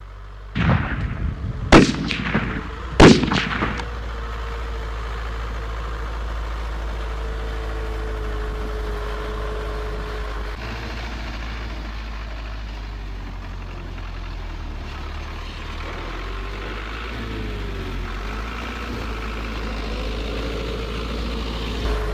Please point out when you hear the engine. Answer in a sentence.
You can hear the engine from 0.0 to 22.0 s.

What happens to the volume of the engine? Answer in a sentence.
The loudness of the engine goes up.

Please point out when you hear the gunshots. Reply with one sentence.
The gunshots can be heard from 0.6 to 3.9 s.